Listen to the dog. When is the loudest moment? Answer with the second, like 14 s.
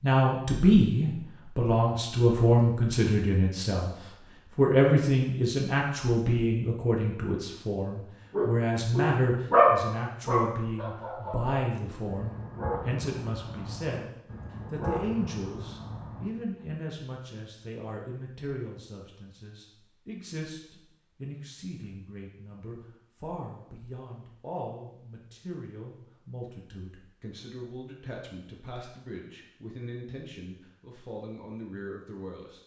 10 s.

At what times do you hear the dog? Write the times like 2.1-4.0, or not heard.
8.3-16.3.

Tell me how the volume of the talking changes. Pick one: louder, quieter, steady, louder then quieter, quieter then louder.
quieter.